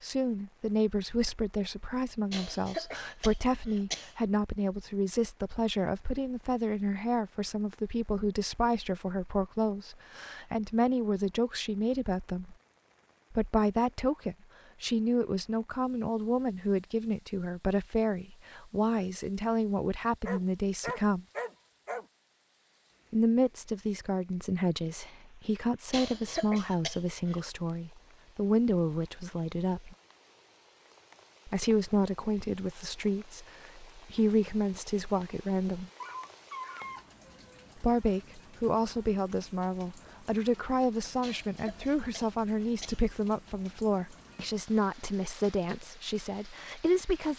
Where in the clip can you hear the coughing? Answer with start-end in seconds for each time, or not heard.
2.3-4.2, 25.9-27.4, 41.2-43.0.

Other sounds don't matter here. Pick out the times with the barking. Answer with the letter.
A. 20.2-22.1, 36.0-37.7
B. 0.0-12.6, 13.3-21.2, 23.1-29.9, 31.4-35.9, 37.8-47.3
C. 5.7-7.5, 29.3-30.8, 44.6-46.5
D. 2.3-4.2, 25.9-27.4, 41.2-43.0
A.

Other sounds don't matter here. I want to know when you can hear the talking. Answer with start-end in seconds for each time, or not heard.
0.0-12.6, 13.3-21.2, 23.1-29.9, 31.4-35.9, 37.8-47.3.